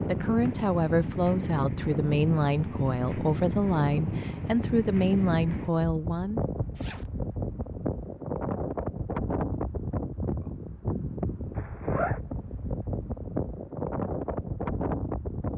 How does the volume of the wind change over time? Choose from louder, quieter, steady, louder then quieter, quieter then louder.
steady.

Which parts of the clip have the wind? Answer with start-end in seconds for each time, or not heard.
0.0-15.5.